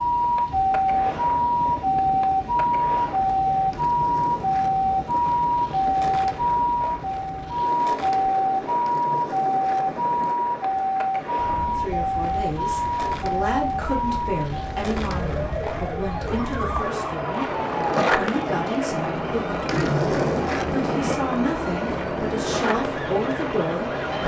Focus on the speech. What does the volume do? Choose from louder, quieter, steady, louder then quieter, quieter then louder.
steady.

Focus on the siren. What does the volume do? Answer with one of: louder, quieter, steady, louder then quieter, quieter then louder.
quieter.